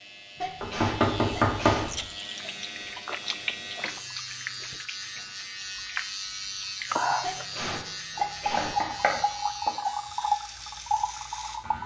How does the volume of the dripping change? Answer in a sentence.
The loudness of the dripping goes up.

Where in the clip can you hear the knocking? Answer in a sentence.
You can hear the knocking from 0.6 to 2.0 s and from 8.6 to 9.8 s.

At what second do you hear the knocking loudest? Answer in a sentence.
The volume of the knocking peaks at 2 seconds.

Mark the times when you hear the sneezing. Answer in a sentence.
The sneezing can be heard from 0.3 to 1.9 s and from 7.2 to 8.8 s.